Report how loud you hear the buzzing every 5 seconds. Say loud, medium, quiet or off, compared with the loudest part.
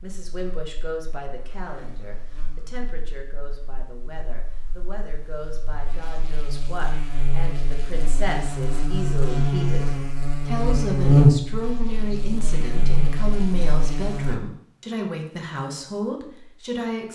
quiet, medium, loud, off.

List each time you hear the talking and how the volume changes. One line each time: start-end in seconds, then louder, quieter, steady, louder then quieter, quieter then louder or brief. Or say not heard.
0.0-17.1 louder.